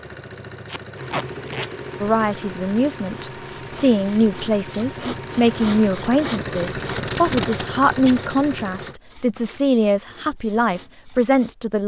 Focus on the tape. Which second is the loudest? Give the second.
7 s.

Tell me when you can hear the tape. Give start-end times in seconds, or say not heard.
0.7-1.7, 6.8-8.2.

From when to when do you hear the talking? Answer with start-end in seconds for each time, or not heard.
2.0-11.8.